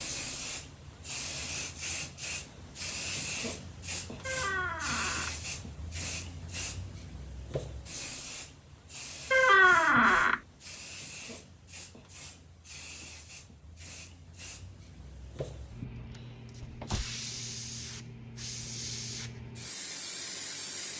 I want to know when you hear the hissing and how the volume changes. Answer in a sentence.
The hissing can be heard from 0.0 to 20.9 s, getting quieter then louder.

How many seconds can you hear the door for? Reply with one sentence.
You can hear the door for 3 seconds altogether.